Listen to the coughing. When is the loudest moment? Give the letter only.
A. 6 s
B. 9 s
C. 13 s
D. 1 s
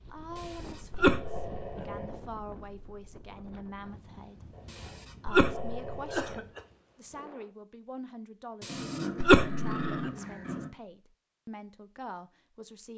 B.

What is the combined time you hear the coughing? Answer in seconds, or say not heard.
4 s.